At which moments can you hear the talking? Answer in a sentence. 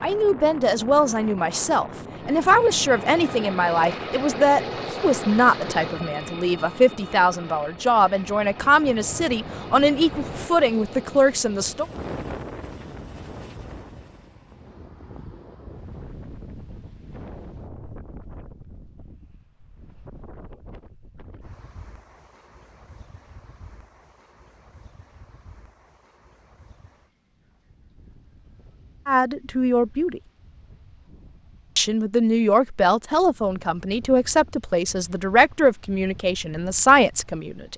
You can hear the talking from 0.0 to 11.8 s, from 29.1 to 30.2 s and from 31.8 to 37.7 s.